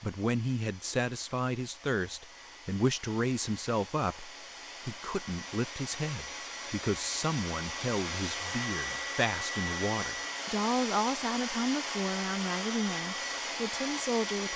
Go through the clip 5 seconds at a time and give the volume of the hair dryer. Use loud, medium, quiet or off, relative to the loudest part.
quiet, loud, loud.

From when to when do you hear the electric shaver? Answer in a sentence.
You can't hear the electric shaver here.